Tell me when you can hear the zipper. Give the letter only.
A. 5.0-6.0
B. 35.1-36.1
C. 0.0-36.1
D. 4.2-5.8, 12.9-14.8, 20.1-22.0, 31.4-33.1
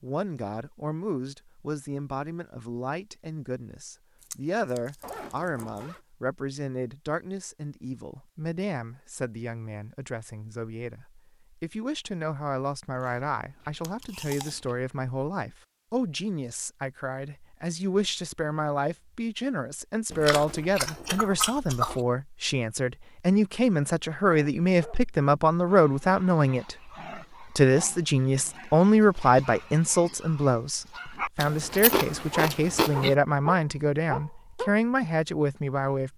A.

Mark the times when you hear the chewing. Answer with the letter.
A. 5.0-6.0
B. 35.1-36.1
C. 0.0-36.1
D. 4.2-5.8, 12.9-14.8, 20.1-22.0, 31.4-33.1
D.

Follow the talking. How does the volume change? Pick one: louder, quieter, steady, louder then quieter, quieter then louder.
louder.